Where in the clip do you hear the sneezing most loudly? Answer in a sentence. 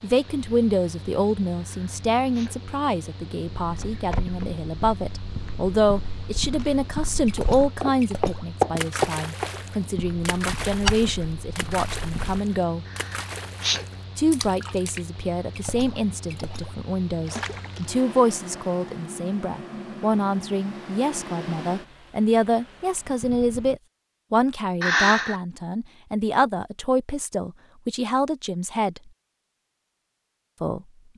The volume of the sneezing peaks at 25 seconds.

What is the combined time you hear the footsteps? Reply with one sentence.
You can hear the footsteps for 9 seconds altogether.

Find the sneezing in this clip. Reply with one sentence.
You can hear the sneezing from 1.6 to 2.5 s, from 12.8 to 13.8 s and from 24.8 to 25.4 s.